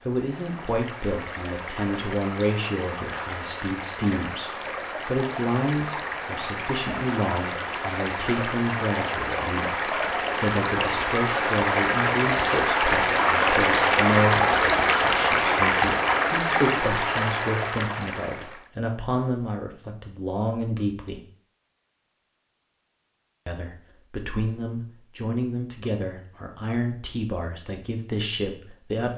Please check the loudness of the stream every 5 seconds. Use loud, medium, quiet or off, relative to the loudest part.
quiet, medium, loud, loud, off, off.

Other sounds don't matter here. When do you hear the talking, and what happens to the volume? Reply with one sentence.
The talking can be heard from 0.1 to 21.2 s, at a steady volume; and from 23.4 to 29.1 s, at a steady volume.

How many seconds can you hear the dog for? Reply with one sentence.
You can't hear the dog here.